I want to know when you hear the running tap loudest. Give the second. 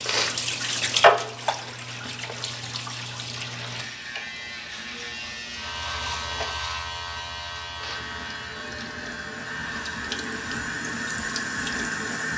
1 s.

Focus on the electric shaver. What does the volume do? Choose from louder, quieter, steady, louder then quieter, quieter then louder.
louder then quieter.